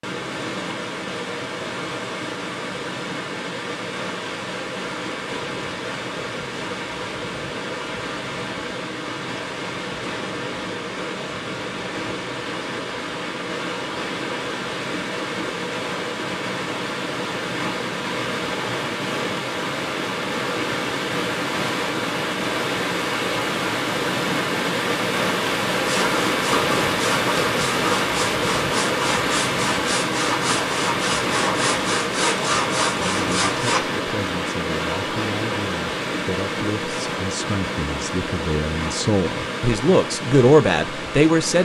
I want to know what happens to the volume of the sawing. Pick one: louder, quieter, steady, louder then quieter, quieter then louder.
steady.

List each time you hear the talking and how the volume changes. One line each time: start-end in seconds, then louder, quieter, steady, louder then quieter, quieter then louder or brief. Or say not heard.
33.0-41.6 louder.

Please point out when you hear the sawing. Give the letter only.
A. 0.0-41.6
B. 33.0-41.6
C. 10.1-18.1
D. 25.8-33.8
D.